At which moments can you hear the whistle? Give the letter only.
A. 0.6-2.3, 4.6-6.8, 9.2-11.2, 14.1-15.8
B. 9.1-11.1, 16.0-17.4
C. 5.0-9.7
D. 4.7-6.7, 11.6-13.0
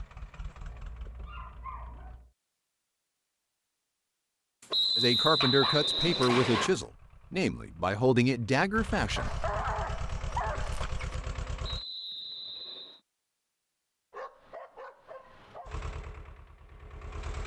D.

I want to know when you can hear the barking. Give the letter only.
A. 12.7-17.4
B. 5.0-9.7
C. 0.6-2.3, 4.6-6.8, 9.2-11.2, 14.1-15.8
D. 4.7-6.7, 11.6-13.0
C.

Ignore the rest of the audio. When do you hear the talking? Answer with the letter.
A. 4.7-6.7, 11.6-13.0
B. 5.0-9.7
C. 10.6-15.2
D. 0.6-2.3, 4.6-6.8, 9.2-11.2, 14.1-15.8
B.